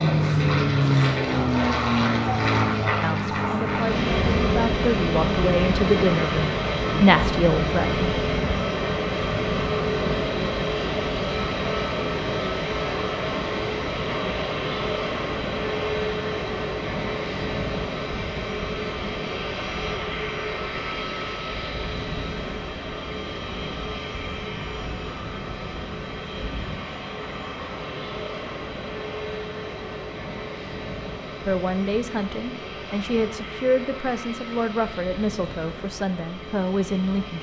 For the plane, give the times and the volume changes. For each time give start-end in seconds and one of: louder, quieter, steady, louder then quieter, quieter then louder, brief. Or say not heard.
0.0-37.3 quieter.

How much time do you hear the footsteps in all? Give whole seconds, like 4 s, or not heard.
not heard.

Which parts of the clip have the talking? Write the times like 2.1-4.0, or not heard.
3.0-8.1, 31.4-37.3.